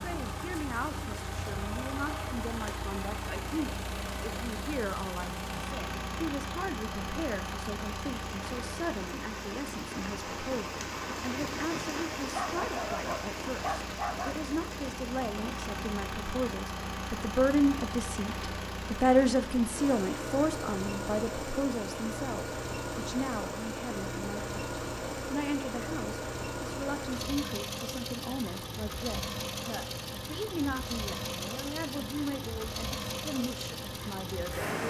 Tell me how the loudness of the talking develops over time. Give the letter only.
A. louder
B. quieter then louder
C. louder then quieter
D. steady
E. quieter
C.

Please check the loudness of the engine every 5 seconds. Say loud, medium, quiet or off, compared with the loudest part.
loud, loud, medium, loud, loud, loud, loud.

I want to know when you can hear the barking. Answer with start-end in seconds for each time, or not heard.
12.3-14.3.